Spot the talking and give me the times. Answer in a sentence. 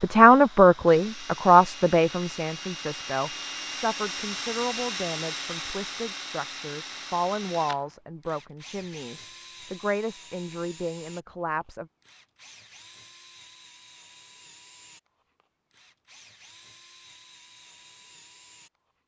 You can hear the talking from 0.0 to 11.8 s.